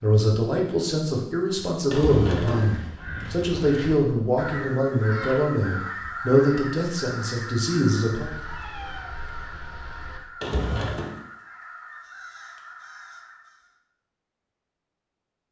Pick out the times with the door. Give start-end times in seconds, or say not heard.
1.9-2.8, 10.4-11.2.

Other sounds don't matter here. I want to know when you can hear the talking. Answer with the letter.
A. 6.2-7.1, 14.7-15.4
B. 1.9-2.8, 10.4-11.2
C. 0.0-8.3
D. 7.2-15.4
C.